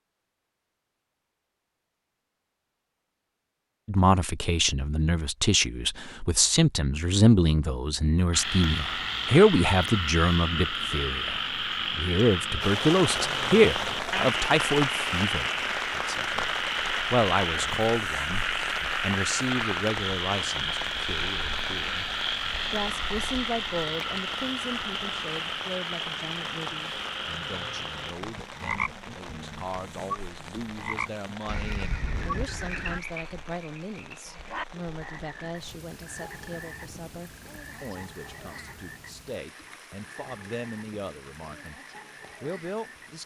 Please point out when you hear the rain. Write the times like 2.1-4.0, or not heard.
12.6-43.2.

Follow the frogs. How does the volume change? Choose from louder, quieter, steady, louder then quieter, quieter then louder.
quieter.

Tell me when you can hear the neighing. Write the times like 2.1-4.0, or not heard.
31.4-33.0.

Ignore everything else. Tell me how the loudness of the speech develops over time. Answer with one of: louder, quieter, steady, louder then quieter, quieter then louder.
quieter.